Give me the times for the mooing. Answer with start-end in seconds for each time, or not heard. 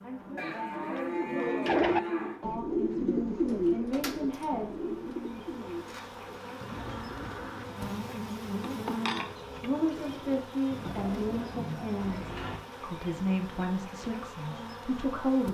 0.3-2.4, 5.8-7.6, 10.8-12.6.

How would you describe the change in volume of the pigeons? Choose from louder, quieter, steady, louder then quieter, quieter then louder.
quieter.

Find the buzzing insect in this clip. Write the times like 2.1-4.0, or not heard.
0.0-15.4.